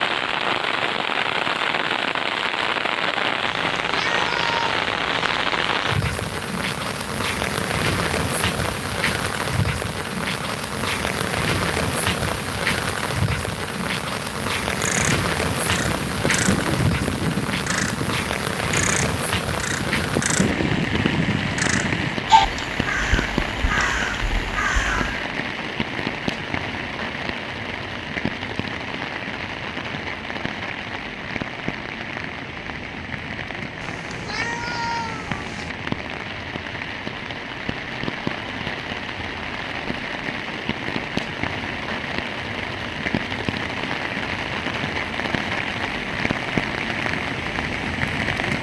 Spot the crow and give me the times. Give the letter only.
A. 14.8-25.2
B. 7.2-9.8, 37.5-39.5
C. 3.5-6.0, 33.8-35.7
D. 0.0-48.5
A.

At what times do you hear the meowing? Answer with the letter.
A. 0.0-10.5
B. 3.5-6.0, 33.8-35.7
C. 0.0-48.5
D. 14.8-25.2
B.